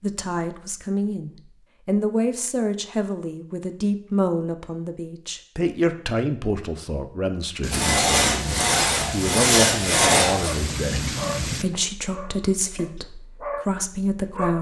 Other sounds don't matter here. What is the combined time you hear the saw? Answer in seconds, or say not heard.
3 s.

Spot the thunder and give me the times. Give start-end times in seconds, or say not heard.
7.6-11.7.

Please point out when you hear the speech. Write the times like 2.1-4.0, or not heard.
0.0-14.5.